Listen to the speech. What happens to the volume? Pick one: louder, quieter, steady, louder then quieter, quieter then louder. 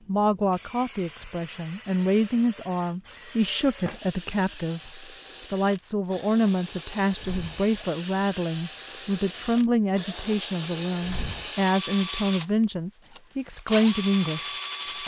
steady.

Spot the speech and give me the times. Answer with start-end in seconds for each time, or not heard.
0.1-15.0.